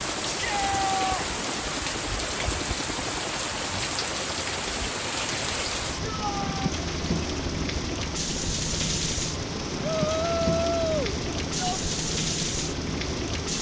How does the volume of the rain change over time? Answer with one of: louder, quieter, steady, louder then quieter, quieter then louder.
steady.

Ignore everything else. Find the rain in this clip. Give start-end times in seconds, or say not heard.
0.0-13.5.